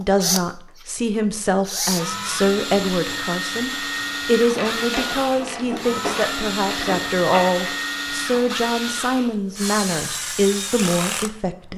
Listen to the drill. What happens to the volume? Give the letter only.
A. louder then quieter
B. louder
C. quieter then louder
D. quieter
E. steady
E.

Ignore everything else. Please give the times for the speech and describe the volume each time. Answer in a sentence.
The speech can be heard from 0.0 to 11.7 s, at a steady volume.